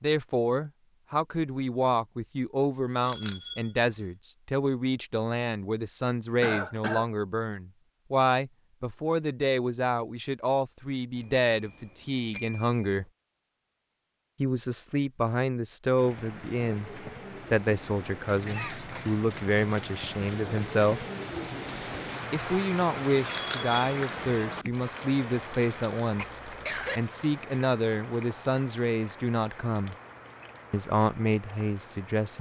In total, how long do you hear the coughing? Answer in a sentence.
You can hear the coughing for 2 seconds altogether.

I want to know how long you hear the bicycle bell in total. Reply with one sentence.
The bicycle bell can be heard for 4 seconds in total.